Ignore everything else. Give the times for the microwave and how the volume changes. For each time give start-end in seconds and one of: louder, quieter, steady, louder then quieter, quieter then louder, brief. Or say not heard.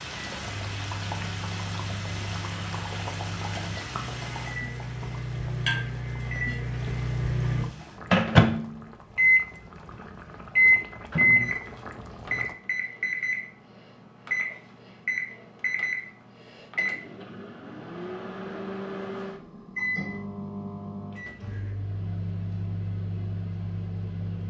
0.2-9.4 louder
10.4-24.4 quieter.